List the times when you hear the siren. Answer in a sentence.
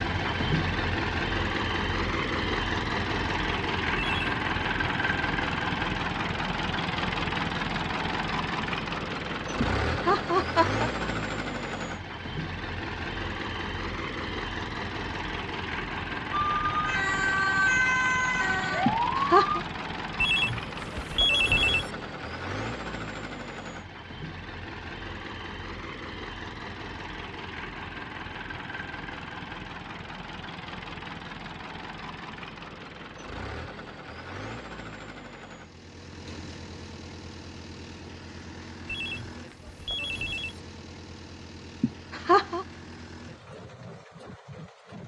You can hear the siren from 16.3 to 19.6 s.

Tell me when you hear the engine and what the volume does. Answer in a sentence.
You can hear the engine from 0.0 to 45.0 s, getting quieter.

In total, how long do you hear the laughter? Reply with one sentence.
The laughter can be heard for 3 seconds in total.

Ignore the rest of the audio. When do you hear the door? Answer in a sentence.
The door can't be heard in this clip.